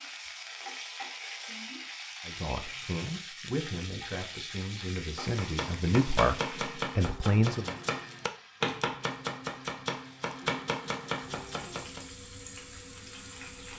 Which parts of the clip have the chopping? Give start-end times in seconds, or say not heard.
5.2-12.1.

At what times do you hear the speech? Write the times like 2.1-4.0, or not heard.
2.2-7.8.